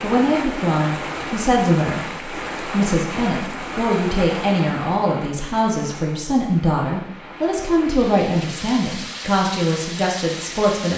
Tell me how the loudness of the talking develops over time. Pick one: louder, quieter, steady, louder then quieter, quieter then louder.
steady.